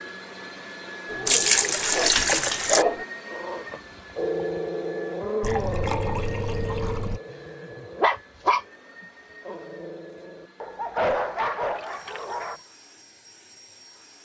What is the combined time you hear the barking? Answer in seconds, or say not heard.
11 s.